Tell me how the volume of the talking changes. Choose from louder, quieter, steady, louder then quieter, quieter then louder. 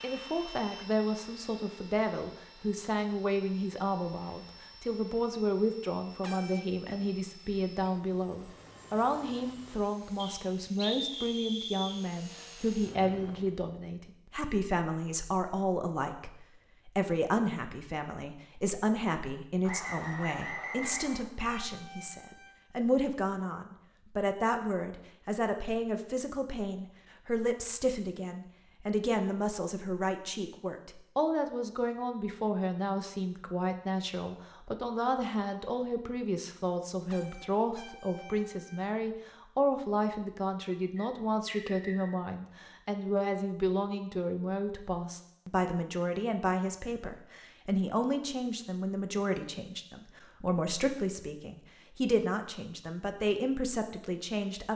steady.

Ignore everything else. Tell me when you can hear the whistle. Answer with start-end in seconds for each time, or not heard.
10.2-12.0, 19.6-21.3, 41.0-42.1.